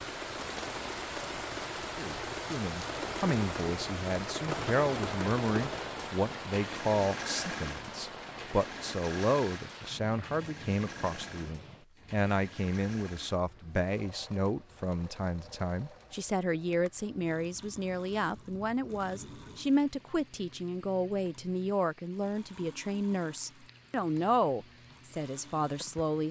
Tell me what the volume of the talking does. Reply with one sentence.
The loudness of the talking stays about the same.